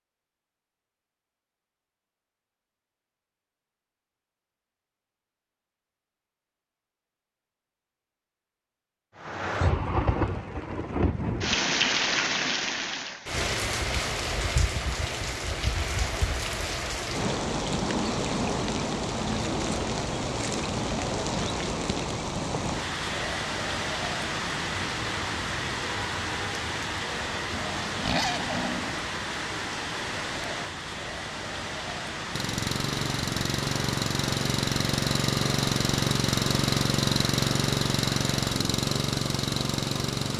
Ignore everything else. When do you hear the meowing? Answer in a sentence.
The meowing can't be heard in this clip.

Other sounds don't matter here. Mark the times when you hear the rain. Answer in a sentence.
The rain can be heard from 9.2 to 40.3 s.